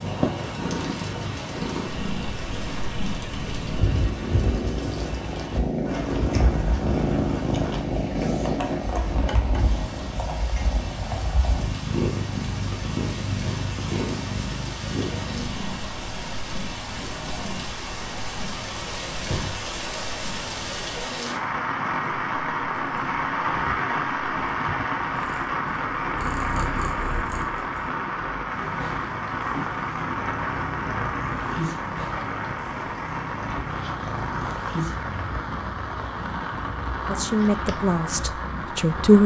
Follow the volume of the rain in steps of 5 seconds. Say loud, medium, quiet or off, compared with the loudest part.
medium, medium, medium, medium, loud, loud, loud, medium.